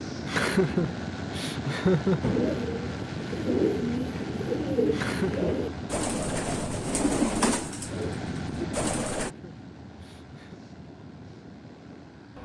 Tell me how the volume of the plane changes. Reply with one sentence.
The volume of the plane goes down.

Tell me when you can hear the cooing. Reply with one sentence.
The cooing can be heard from 2.2 to 9.3 s.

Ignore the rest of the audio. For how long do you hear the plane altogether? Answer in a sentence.
The plane can be heard for 12 seconds in total.